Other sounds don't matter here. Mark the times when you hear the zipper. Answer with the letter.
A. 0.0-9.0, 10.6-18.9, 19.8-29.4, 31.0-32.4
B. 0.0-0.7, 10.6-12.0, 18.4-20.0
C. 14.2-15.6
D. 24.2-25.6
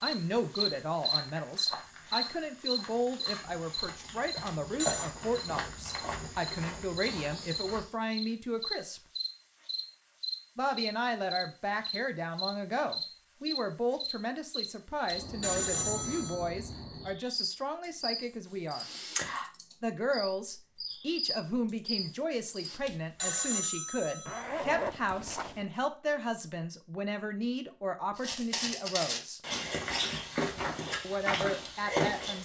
D.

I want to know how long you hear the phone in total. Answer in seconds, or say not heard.
4 s.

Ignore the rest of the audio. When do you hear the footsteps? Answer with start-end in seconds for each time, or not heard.
0.0-8.0, 28.1-32.4.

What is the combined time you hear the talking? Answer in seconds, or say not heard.
28 s.